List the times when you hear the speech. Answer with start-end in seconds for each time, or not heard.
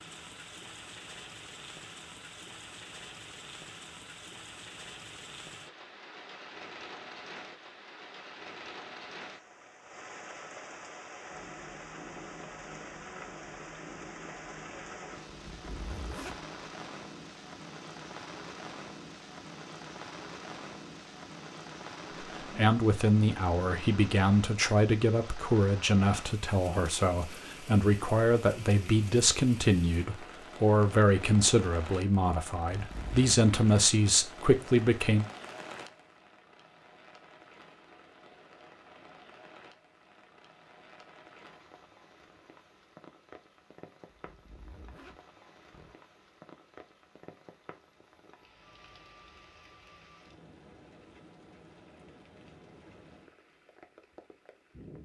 22.4-35.2.